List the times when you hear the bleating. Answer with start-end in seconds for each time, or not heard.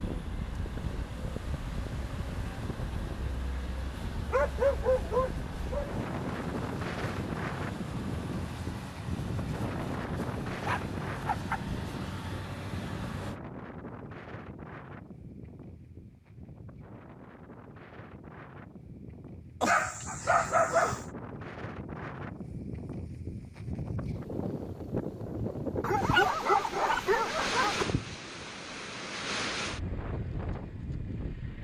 not heard.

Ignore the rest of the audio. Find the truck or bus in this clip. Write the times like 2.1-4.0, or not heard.
0.0-13.4.